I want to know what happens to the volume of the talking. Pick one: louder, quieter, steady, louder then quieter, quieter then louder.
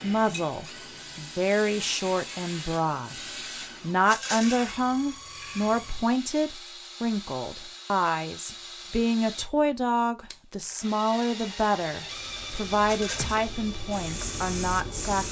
steady.